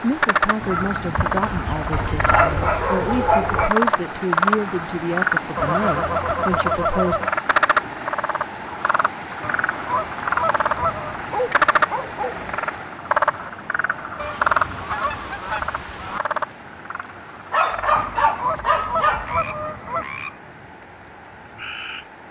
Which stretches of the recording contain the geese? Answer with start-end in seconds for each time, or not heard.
0.6-2.4, 5.5-7.3, 9.4-11.2, 14.2-16.2, 17.9-20.1.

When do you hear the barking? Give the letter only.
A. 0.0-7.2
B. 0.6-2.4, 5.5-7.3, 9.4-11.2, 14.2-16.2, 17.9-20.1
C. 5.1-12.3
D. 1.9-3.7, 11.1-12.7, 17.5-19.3
D.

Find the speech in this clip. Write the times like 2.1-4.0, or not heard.
0.0-7.2.